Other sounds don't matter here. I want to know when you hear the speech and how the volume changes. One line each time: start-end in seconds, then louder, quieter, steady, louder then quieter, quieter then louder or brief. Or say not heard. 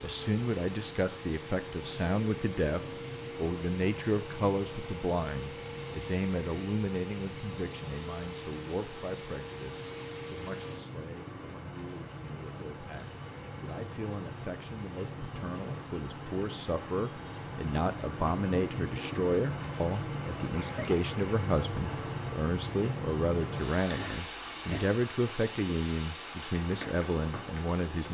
0.0-28.0 quieter then louder.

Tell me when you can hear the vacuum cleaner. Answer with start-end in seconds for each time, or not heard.
0.0-10.8.